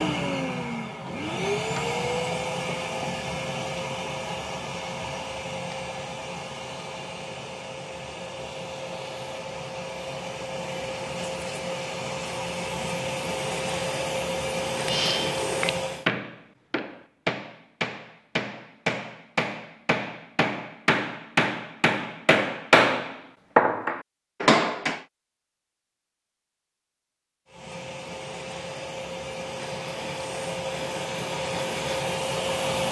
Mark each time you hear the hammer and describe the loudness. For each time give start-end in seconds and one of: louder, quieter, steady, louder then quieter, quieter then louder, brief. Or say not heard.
14.7-25.0 louder.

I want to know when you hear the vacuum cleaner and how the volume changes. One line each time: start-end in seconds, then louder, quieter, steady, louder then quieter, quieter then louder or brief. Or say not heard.
0.0-16.1 quieter then louder
27.4-32.8 louder.